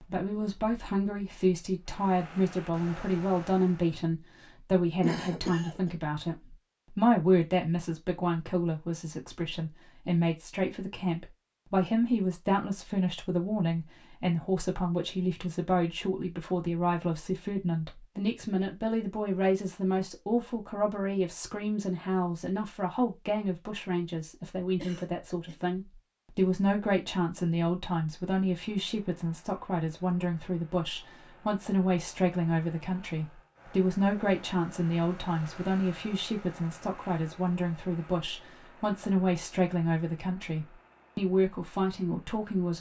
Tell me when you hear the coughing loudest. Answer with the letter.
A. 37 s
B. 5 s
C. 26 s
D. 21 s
B.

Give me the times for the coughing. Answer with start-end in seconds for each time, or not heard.
5.0-5.9, 24.8-25.6.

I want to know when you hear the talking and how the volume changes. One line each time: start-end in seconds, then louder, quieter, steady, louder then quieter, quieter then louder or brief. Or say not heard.
0.0-42.7 steady.